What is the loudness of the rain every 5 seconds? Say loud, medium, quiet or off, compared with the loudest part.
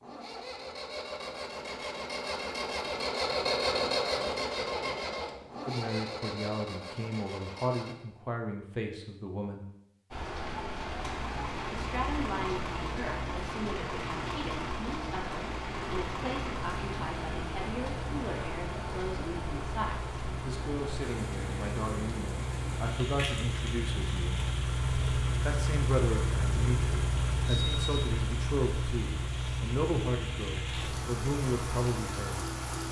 off, off, loud, loud, loud, medium, loud.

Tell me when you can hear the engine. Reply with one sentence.
The engine can be heard from 0.0 to 8.0 s and from 11.0 to 32.8 s.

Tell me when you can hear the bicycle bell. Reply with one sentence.
The bicycle bell can be heard from 27.4 to 28.1 s.